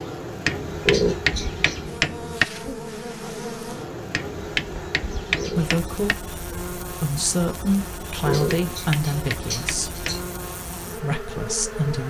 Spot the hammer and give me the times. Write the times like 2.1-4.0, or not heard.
0.5-2.5, 4.1-6.2, 8.5-10.2.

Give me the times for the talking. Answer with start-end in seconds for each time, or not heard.
5.5-10.1, 10.9-12.0.